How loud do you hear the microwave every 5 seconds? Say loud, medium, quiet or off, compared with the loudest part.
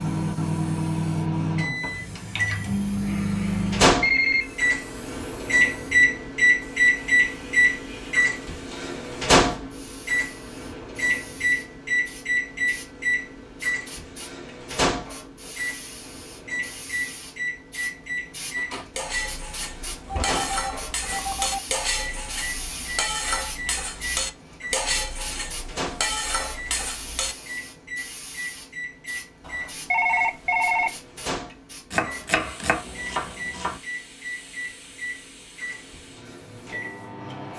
loud, loud, medium, quiet, quiet, quiet, quiet, quiet.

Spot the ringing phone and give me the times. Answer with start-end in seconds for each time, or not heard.
4.0-4.7, 20.1-21.6, 29.4-30.9.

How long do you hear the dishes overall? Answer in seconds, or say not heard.
9 s.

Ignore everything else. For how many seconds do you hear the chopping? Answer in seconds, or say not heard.
2 s.